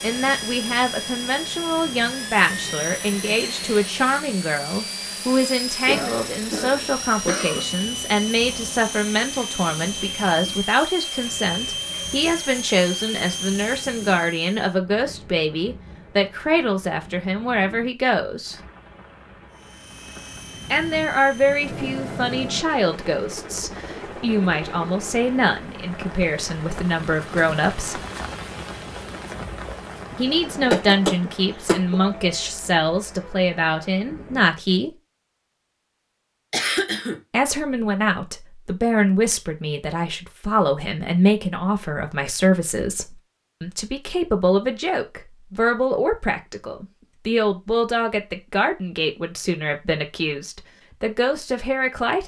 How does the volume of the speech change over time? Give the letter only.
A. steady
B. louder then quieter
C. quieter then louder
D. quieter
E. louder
A.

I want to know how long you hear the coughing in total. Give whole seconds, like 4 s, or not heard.
4 s.